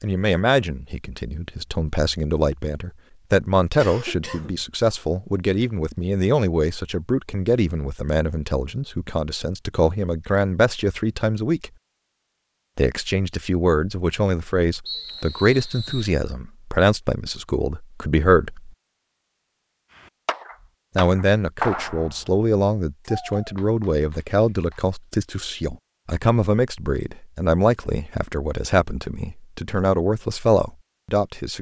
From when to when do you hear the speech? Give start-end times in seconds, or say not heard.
0.0-11.7, 12.8-18.7, 20.9-31.5.